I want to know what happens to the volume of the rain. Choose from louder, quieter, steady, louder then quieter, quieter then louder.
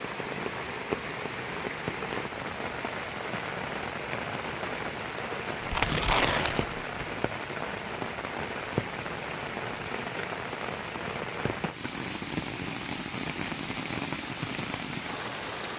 steady.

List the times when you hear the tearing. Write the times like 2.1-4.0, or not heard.
5.6-7.0.